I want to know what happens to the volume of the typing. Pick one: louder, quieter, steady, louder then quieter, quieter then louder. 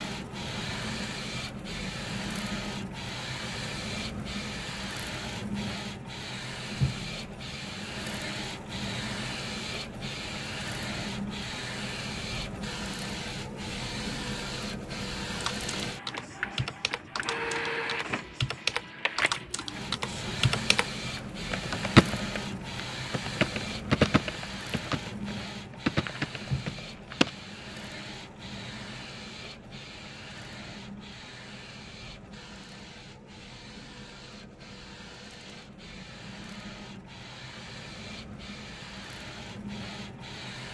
louder then quieter.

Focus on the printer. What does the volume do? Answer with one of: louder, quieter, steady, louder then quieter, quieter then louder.
quieter.